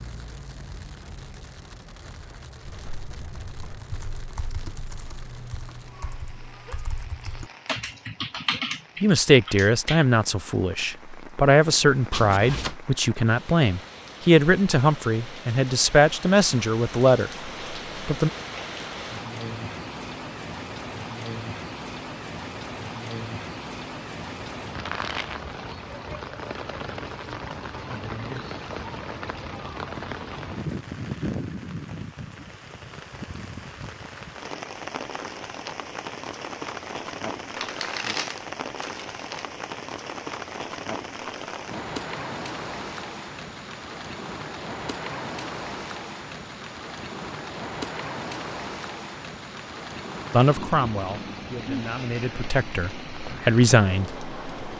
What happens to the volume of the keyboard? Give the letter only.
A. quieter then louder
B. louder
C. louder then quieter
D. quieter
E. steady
B.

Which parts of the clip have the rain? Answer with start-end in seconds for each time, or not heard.
0.0-54.7.